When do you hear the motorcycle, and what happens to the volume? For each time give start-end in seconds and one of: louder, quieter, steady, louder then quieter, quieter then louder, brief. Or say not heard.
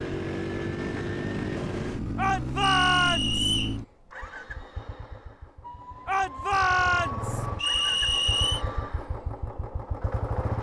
0.0-10.5 quieter then louder.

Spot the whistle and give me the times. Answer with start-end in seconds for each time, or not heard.
2.5-3.8, 7.5-8.7.